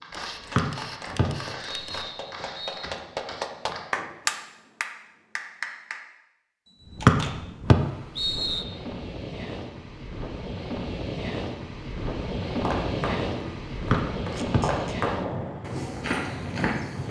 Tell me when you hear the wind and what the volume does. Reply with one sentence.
The wind can be heard from 6.8 to 17.0 s, getting louder.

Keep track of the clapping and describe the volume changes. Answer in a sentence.
The loudness of the clapping goes up, then down.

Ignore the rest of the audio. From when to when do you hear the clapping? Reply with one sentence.
You can hear the clapping from 0.5 to 6.0 s.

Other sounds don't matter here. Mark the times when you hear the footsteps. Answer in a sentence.
The footsteps can be heard from 0.0 to 4.3 s and from 12.4 to 17.0 s.